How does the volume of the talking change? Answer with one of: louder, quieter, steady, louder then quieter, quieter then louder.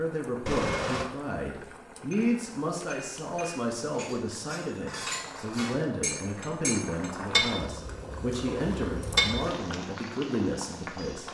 steady.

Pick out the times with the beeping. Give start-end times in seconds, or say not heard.
0.5-1.1.